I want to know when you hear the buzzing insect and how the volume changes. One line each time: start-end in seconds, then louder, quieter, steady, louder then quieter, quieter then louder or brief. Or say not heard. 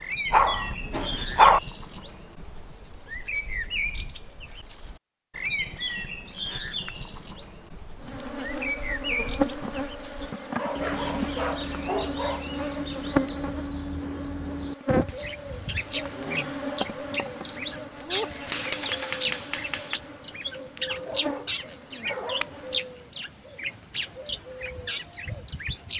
8.0-22.9 quieter.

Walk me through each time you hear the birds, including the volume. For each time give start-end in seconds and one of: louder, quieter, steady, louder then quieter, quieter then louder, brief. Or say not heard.
0.0-25.9 steady.